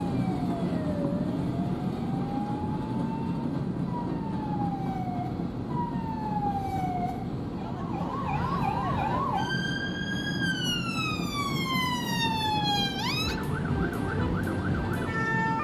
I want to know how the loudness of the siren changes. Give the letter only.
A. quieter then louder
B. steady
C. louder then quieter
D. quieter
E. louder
E.